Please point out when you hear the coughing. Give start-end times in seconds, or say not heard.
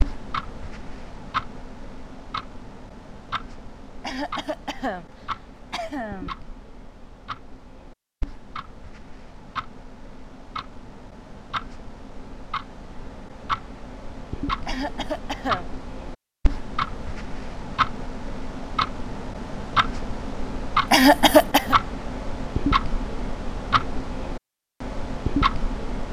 4.0-6.3, 14.7-15.7, 20.9-21.8.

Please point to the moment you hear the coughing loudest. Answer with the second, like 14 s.
21 s.